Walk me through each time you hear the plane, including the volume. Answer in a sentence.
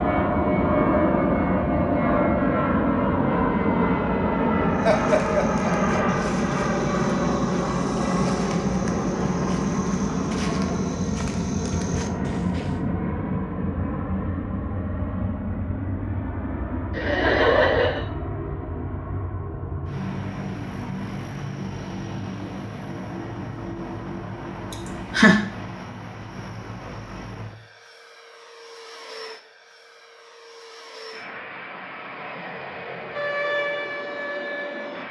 You can hear the plane from 0.0 to 35.0 s, getting quieter.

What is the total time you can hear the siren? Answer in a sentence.
The siren can be heard for 2 seconds in total.